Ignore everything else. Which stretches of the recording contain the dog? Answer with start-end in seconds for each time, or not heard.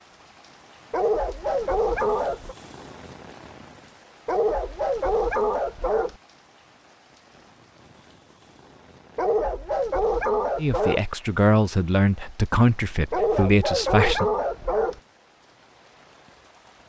0.9-2.5, 4.2-6.2, 9.2-11.1, 13.1-15.0.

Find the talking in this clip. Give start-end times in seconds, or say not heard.
10.6-14.3.